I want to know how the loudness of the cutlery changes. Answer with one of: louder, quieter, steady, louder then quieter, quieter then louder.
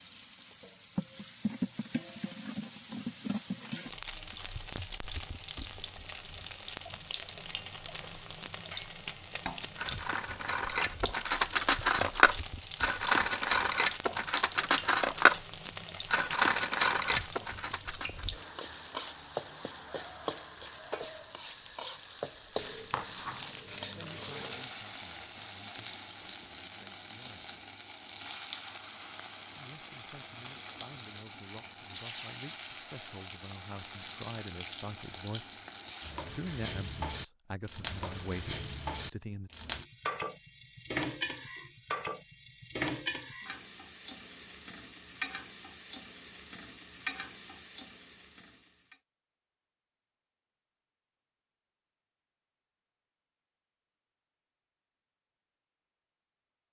louder.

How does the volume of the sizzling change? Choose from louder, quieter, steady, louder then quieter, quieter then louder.
steady.